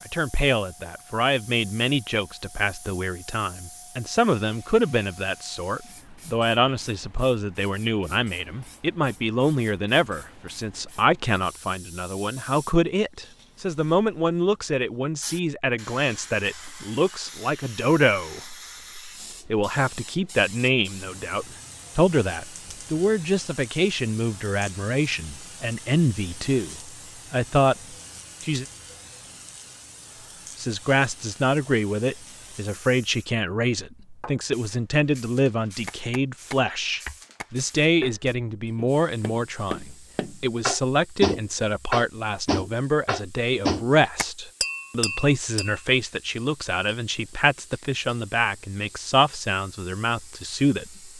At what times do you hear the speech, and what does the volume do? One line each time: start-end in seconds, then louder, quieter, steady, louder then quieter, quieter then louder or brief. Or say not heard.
0.1-28.6 steady
30.6-51.1 steady.